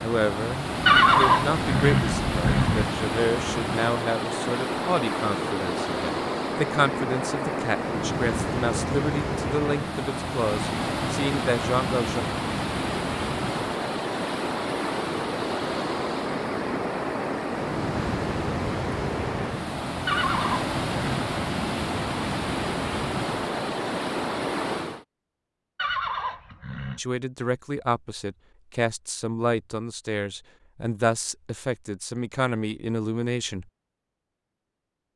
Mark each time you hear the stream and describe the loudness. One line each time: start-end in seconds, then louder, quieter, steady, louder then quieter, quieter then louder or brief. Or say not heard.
0.0-25.1 steady.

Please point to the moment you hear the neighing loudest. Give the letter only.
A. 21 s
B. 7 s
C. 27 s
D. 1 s
D.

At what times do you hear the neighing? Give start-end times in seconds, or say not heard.
0.8-2.9, 20.1-21.2, 25.8-27.0.